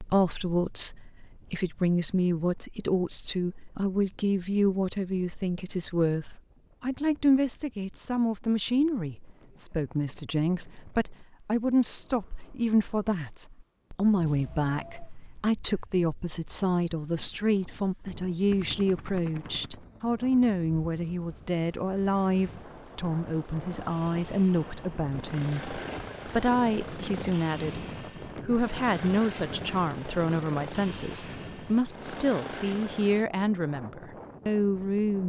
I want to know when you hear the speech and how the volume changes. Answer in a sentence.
You can hear the speech from 0.0 to 27.9 s, at a steady volume; and from 28.4 to 35.2 s, at a steady volume.